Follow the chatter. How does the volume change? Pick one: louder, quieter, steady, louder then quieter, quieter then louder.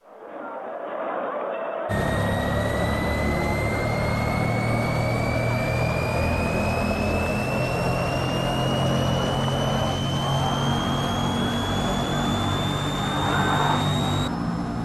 steady.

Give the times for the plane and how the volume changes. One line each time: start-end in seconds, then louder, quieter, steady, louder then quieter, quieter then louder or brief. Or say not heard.
1.9-14.8 steady.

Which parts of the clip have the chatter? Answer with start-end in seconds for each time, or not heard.
0.0-14.8.